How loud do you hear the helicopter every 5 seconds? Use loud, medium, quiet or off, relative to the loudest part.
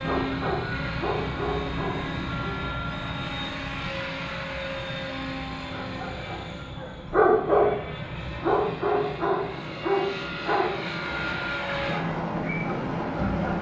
loud, medium, loud.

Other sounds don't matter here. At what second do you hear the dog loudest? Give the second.
7 s.